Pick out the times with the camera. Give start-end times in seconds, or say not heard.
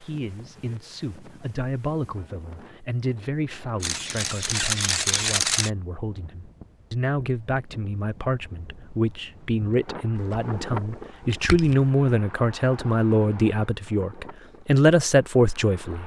3.8-5.7, 10.2-11.8.